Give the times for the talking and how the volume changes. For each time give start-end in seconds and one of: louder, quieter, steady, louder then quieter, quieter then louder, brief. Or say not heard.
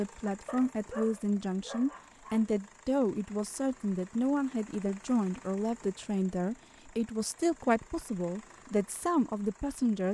0.0-10.0 steady.